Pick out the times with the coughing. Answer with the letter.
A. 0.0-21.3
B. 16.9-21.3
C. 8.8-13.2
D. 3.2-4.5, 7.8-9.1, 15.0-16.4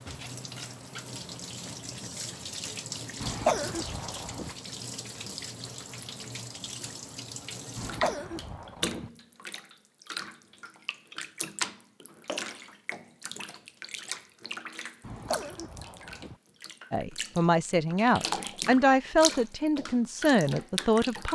D.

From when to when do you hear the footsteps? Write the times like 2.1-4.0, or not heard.
not heard.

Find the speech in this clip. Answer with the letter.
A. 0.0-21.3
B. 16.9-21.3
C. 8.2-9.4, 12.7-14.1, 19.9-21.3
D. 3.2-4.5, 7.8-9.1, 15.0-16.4
B.